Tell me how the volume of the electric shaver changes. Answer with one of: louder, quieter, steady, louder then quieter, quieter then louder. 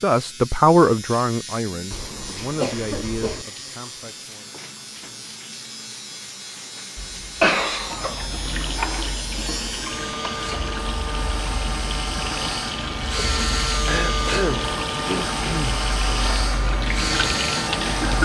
louder.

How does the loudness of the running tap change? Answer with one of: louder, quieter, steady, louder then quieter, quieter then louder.
louder.